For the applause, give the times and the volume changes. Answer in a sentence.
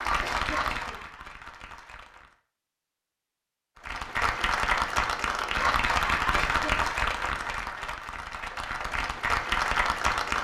You can hear the applause briefly from 0.0 to 2.4 s; and from 3.8 to 10.3 s, getting quieter then louder.